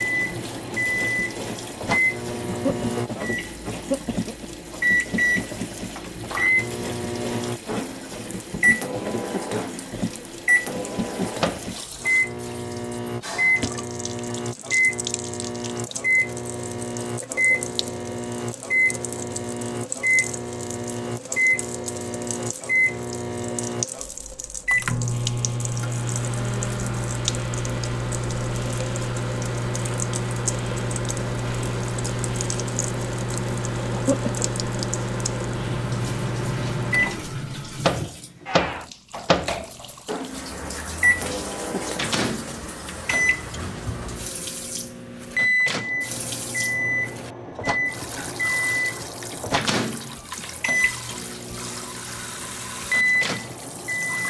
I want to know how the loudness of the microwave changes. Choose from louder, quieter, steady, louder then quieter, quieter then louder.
steady.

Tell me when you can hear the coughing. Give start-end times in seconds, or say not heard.
2.5-4.5, 33.9-34.5.